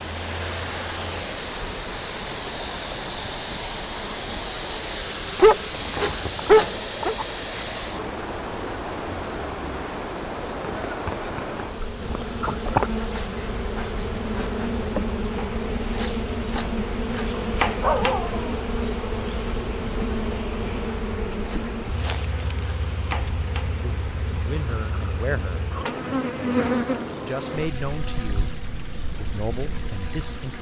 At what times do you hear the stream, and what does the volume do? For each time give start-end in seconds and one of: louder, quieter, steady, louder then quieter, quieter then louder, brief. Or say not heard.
0.0-30.5 quieter.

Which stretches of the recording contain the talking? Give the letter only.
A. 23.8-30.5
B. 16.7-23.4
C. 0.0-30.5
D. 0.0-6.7
A.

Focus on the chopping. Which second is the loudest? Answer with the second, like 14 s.
18 s.